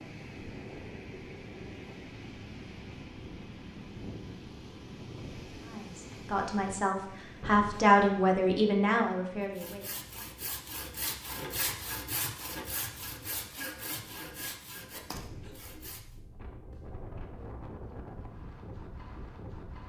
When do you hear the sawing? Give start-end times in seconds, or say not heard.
9.6-16.1.